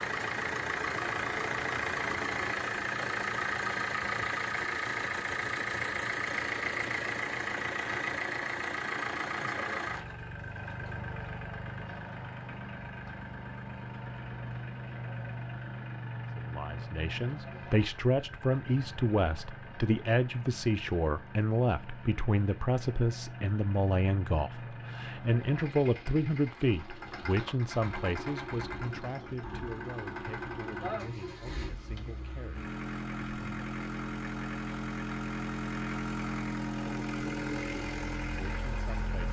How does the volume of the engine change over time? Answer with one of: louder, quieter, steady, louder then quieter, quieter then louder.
quieter then louder.